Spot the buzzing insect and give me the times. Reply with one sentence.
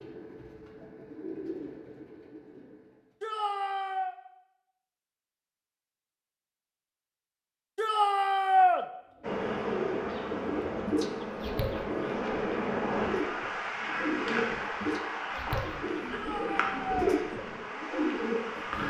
The buzzing insect can be heard from 9.2 to 18.8 s.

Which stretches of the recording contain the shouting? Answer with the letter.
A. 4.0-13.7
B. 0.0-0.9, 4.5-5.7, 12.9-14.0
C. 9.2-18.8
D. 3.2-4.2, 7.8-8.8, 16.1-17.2
D.